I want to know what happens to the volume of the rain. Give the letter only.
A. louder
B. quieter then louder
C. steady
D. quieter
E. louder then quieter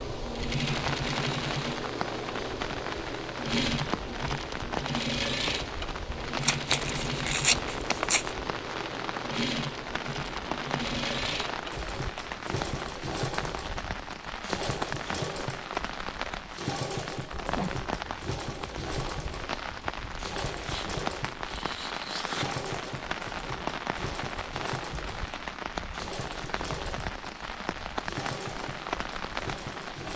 C.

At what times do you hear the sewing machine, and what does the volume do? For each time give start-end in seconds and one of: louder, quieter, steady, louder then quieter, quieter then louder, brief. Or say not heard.
0.0-30.1 quieter.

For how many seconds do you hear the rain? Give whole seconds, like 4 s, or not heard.
30 s.